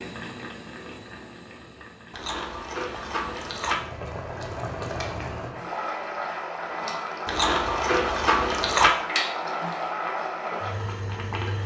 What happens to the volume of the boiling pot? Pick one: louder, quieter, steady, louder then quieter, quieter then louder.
louder.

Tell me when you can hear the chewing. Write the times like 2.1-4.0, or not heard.
2.1-3.8, 7.2-8.9.